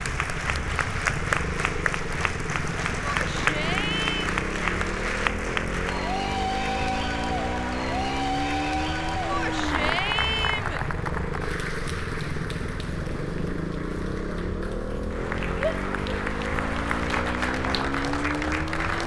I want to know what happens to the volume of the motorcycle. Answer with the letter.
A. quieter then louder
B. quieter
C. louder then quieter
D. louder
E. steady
E.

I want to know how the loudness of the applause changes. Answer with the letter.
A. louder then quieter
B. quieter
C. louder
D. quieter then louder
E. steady
D.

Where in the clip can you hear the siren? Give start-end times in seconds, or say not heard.
not heard.